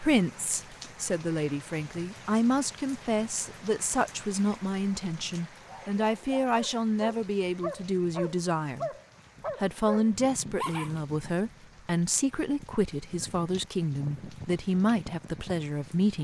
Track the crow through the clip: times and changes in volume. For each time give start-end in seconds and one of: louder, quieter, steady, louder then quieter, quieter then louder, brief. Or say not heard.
not heard.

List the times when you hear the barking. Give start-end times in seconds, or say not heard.
5.5-10.9.